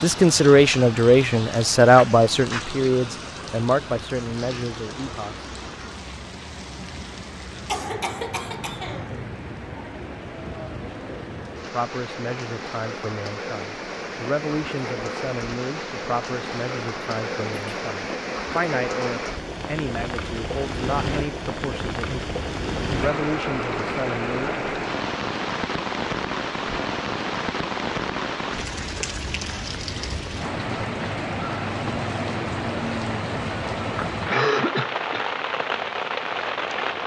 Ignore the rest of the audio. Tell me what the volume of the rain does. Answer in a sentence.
The loudness of the rain goes up.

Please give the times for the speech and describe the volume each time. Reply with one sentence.
The speech can be heard from 0.0 to 5.5 s, getting quieter; and from 11.7 to 24.6 s, at a steady volume.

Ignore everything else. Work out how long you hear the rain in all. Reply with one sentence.
The rain can be heard for 37 seconds in total.